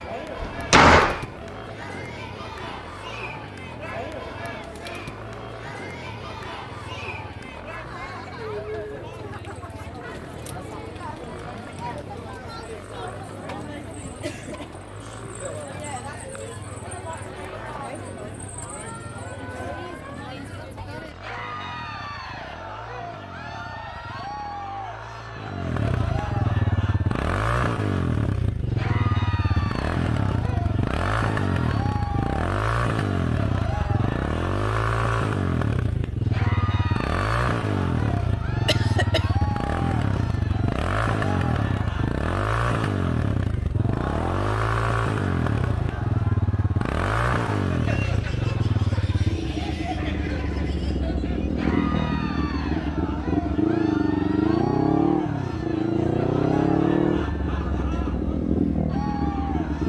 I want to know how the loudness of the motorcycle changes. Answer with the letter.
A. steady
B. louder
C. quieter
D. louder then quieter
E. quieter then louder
B.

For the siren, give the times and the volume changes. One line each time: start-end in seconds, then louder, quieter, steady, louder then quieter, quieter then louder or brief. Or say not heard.
not heard.